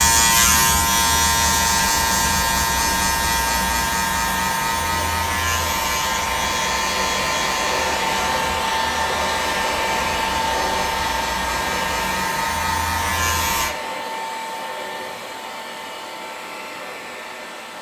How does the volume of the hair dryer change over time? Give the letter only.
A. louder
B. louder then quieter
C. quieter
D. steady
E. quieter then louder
B.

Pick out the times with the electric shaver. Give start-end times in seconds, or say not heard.
0.0-13.8.